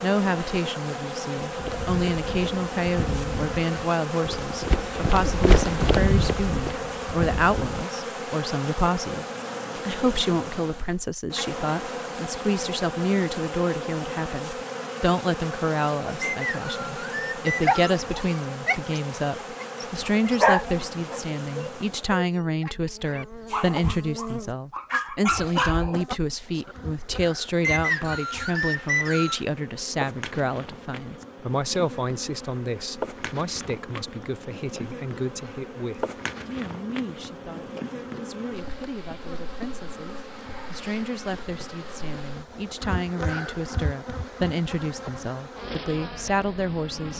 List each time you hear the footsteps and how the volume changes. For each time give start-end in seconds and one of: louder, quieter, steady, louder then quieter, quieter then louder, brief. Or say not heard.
1.4-7.8 louder then quieter.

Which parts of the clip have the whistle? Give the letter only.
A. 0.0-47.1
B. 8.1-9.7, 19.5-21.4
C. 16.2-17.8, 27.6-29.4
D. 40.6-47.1
C.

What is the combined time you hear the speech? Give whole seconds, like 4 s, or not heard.
47 s.